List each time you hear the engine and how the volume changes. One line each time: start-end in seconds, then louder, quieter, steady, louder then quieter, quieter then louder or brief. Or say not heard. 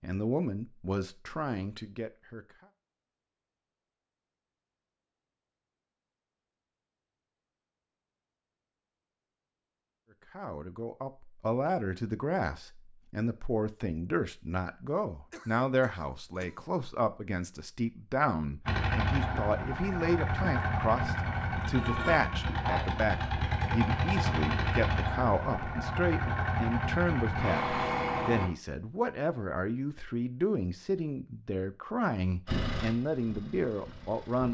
18.6-28.5 steady
32.5-34.4 brief.